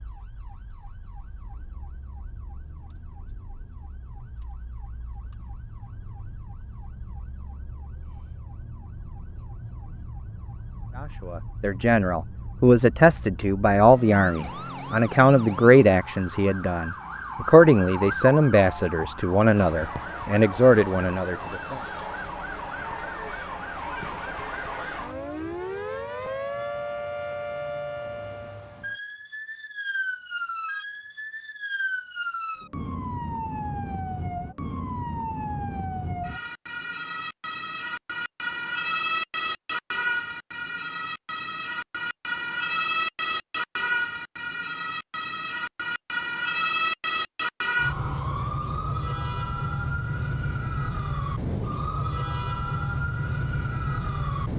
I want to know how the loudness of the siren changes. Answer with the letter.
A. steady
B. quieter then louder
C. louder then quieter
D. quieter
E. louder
E.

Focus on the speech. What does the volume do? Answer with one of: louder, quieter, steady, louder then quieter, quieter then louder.
steady.